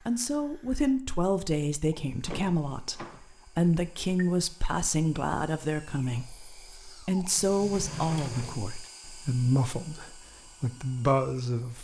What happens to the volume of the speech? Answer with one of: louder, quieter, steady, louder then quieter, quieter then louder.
steady.